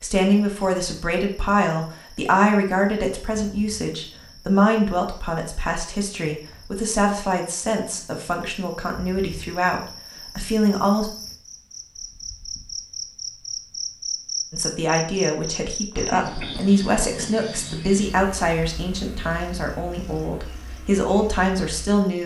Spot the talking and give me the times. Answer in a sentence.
The talking can be heard from 0.0 to 11.1 s and from 14.5 to 22.2 s.